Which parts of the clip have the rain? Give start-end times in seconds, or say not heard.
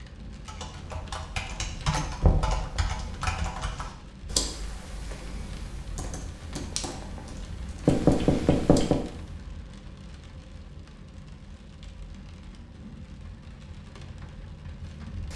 0.0-15.3.